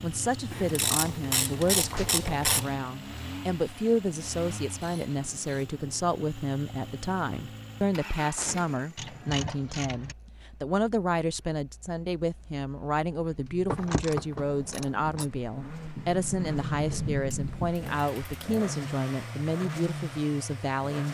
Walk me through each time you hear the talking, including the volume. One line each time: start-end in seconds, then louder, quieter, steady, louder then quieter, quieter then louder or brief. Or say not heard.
0.0-21.0 steady.